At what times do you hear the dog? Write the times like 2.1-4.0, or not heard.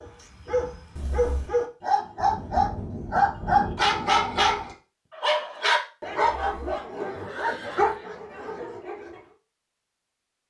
0.0-9.2.